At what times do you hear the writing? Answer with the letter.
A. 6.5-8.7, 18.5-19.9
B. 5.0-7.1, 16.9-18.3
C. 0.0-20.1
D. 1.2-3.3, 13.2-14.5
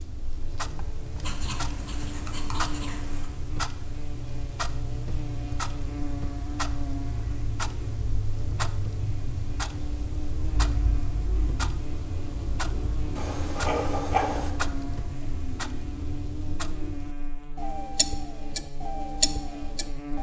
D.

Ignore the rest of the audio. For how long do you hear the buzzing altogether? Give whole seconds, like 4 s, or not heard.
20 s.